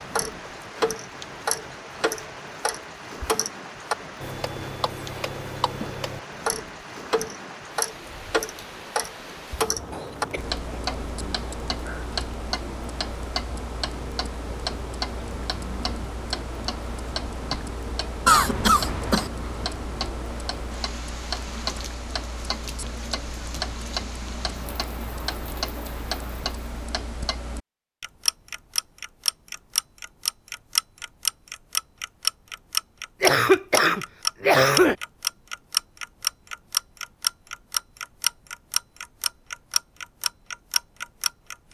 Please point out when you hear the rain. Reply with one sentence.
The rain can be heard from 0.0 to 26.6 s.